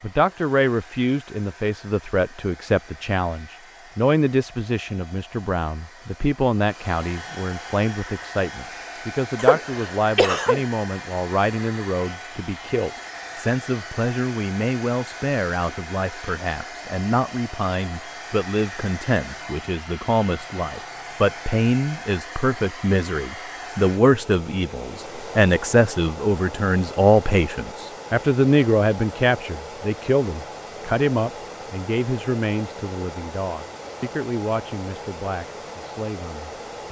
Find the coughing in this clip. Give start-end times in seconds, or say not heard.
9.3-10.6.